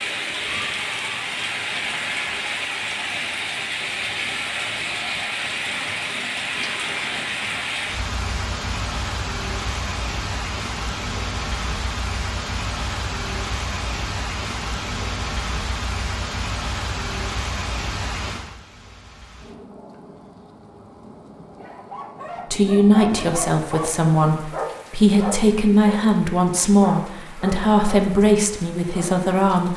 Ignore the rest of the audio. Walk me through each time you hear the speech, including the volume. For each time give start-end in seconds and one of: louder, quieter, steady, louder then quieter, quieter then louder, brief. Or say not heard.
22.5-29.7 steady.